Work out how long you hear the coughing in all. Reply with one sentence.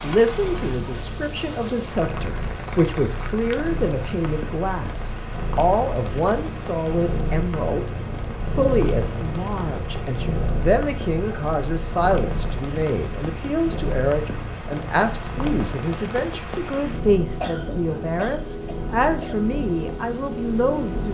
The coughing can be heard for 2 seconds in total.